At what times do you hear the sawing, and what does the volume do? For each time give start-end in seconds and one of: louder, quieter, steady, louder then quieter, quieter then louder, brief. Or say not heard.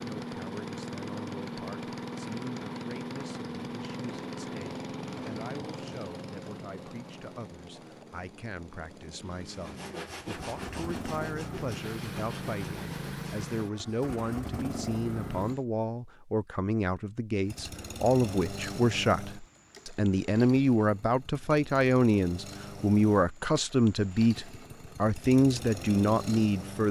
9.5-13.5 quieter.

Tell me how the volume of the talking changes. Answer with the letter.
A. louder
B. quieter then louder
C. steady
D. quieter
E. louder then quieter
A.